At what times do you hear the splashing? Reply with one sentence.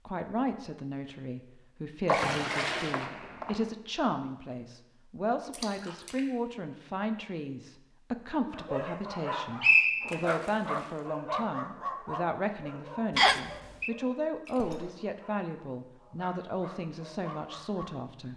You can hear the splashing from 2.0 to 3.1 s, from 5.5 to 6.2 s, from 10.1 to 11.1 s and from 14.4 to 15.1 s.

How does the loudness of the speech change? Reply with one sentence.
The loudness of the speech stays about the same.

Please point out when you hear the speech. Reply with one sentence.
You can hear the speech from 0.1 to 18.3 s.